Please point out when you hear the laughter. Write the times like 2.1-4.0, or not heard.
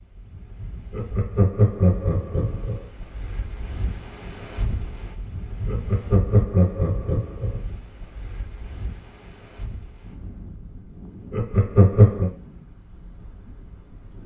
0.9-2.9, 5.7-7.6, 11.3-12.3.